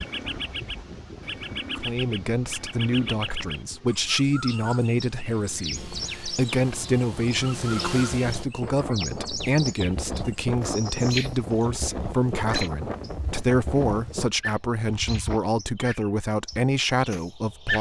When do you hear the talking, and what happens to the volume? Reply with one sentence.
The talking can be heard from 1.8 to 17.7 s, at a steady volume.